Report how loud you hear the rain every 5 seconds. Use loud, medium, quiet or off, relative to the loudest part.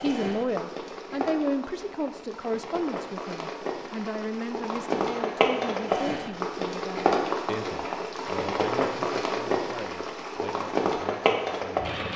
medium, loud, loud.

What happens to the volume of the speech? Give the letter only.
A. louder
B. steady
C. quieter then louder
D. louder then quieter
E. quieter
E.